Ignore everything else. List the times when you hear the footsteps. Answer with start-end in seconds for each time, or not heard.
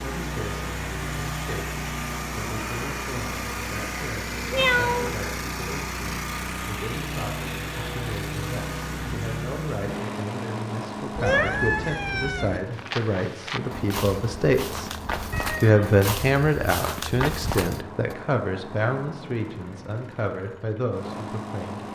12.7-18.1.